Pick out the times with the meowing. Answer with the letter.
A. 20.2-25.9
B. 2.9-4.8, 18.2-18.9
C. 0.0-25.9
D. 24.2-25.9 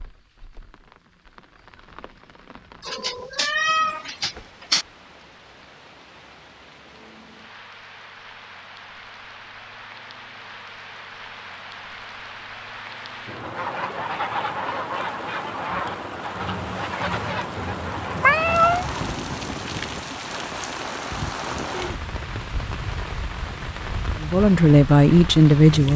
B.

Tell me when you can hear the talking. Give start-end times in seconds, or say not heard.
24.2-25.9.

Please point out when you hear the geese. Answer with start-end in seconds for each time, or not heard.
13.4-19.1.